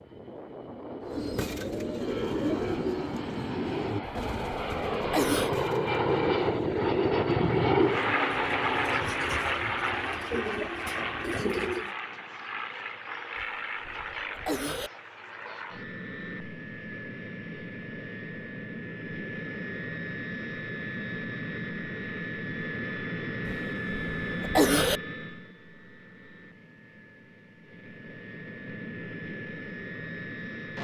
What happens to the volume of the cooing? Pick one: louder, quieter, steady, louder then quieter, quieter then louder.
quieter then louder.